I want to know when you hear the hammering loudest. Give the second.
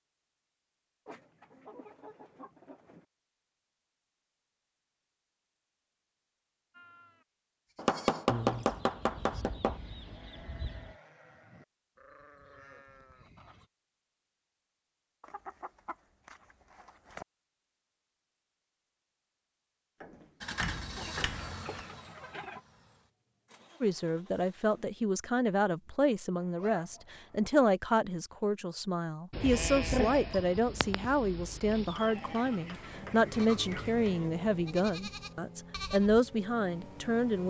8 s.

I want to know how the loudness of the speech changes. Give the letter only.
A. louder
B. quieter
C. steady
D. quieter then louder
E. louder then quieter
C.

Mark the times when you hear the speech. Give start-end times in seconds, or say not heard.
23.8-37.4.